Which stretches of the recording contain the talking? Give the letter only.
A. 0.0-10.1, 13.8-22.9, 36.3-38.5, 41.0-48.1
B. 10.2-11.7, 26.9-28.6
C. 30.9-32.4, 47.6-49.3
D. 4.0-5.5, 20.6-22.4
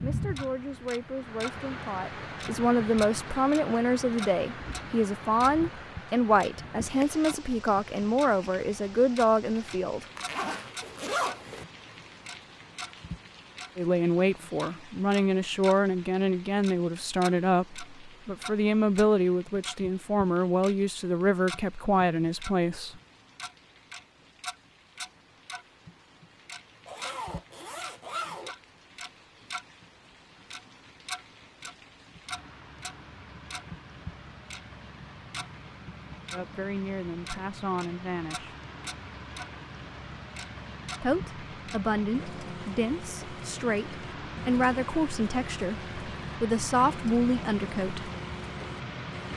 A.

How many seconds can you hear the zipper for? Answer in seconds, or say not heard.
3 s.